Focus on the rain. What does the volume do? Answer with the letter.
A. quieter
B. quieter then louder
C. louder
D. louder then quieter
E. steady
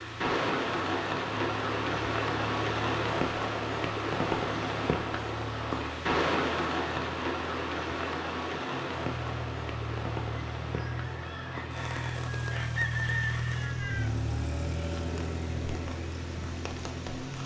A.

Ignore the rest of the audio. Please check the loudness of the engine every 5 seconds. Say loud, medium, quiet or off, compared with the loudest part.
medium, medium, loud, loud.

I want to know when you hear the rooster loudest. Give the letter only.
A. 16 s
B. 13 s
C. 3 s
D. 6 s
B.